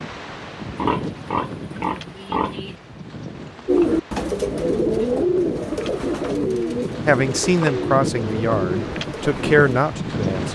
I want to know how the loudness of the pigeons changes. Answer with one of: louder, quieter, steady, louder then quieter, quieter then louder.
quieter.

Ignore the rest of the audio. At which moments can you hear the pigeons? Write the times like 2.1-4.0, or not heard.
3.6-9.8.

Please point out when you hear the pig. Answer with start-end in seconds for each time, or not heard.
0.8-2.8.